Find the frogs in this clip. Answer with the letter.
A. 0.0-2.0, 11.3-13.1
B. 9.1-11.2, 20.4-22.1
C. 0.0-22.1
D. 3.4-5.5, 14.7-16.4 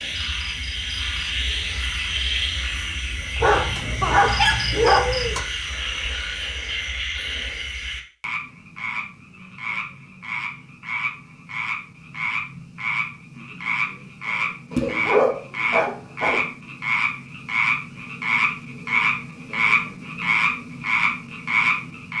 C.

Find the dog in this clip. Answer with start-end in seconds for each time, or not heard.
3.4-5.5, 14.7-16.4.